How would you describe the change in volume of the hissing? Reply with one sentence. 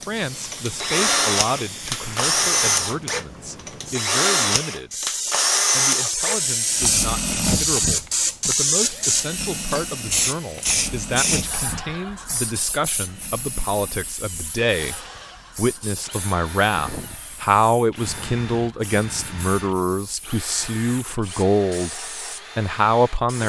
The loudness of the hissing goes up, then down.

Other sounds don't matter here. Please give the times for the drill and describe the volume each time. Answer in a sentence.
The drill can be heard from 0.0 to 23.4 s, getting quieter.